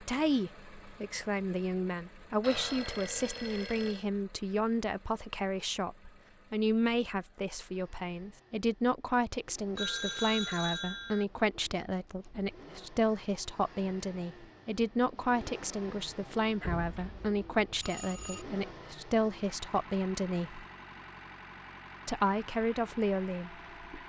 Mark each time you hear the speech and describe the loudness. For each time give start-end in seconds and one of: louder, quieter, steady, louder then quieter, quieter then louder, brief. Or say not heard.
0.0-20.6 steady
22.1-24.0 brief.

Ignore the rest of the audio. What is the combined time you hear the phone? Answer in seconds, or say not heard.
5 s.